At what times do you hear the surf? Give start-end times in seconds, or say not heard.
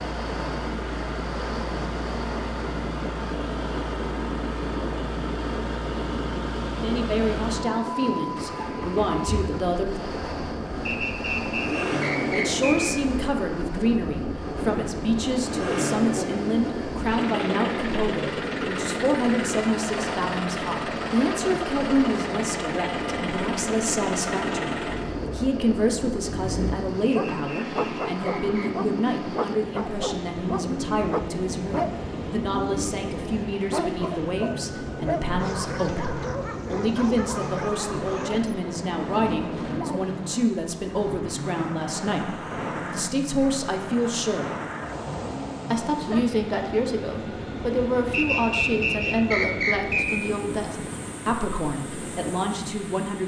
0.0-53.2.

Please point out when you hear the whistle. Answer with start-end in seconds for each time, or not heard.
10.8-12.9, 27.3-28.7, 48.1-50.2.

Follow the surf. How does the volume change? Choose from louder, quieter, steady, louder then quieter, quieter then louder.
steady.